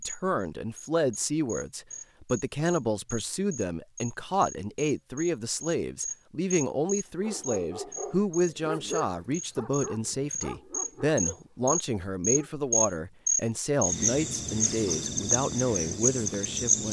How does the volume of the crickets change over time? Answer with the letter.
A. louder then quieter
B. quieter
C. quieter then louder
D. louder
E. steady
D.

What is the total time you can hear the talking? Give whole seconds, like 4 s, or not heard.
17 s.